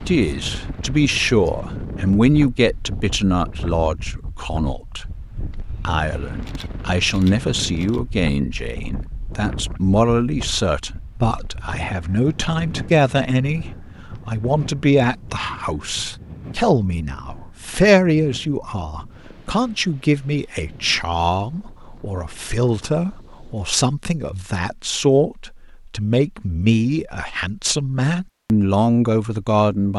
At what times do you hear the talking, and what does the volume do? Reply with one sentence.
The talking can be heard from 0.1 to 29.9 s, at a steady volume.